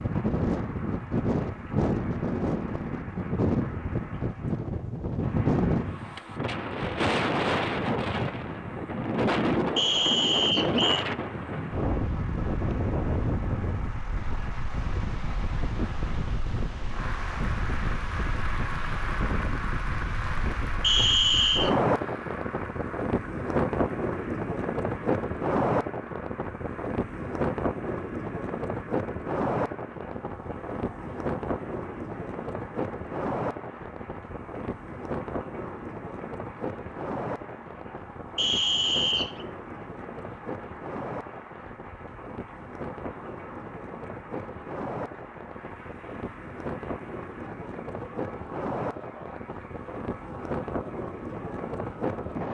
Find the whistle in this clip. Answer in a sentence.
You can hear the whistle from 9.8 to 11.1 s, from 20.8 to 21.8 s and from 38.4 to 39.5 s.